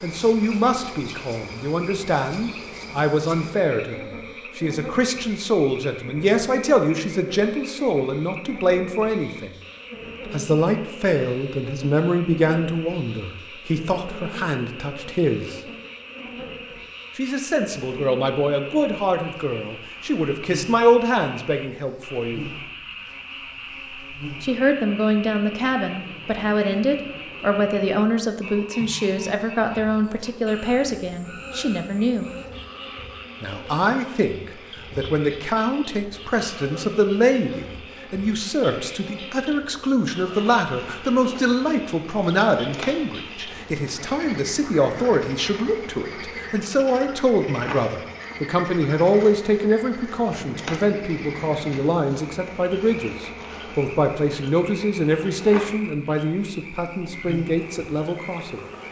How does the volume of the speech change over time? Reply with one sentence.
The loudness of the speech stays about the same.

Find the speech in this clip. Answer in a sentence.
You can hear the speech from 0.0 to 9.6 s, from 10.3 to 15.6 s, from 17.1 to 22.4 s, from 24.4 to 32.3 s and from 33.4 to 58.6 s.